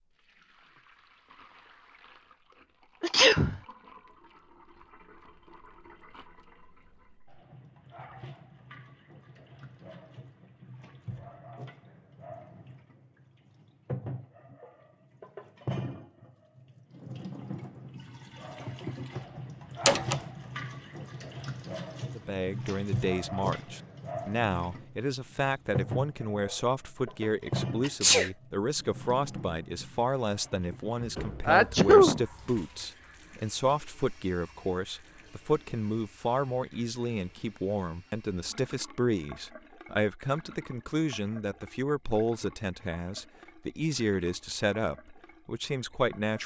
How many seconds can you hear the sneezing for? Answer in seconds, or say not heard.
2 s.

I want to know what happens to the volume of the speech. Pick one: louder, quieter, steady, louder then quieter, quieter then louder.
steady.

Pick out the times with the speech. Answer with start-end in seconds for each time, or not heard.
22.1-46.4.